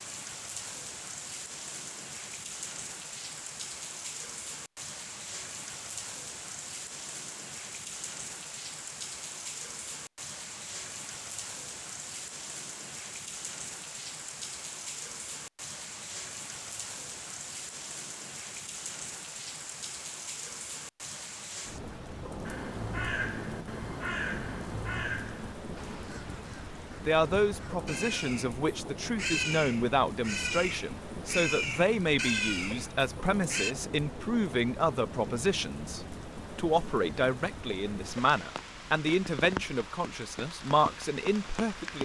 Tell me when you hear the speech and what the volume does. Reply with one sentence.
You can hear the speech from 27.0 to 42.0 s, at a steady volume.